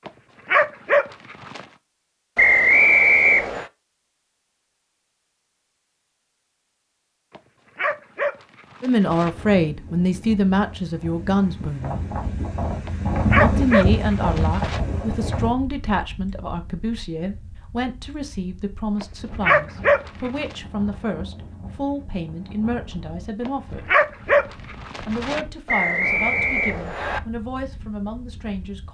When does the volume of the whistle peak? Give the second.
3 s.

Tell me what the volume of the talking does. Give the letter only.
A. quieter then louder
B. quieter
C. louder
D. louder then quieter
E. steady
B.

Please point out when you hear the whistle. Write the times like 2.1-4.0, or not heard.
2.4-3.6, 25.6-27.2.